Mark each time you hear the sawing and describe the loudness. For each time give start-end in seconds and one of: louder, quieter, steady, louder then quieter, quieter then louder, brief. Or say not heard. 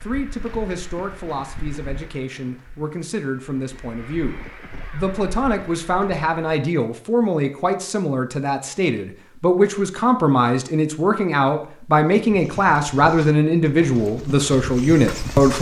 not heard.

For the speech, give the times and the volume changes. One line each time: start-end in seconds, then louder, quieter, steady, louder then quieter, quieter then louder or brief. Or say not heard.
0.0-15.5 louder.